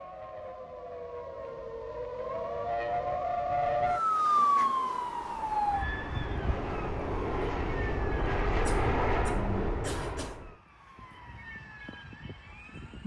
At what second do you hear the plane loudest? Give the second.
9 s.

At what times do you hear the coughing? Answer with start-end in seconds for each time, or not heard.
8.7-10.4.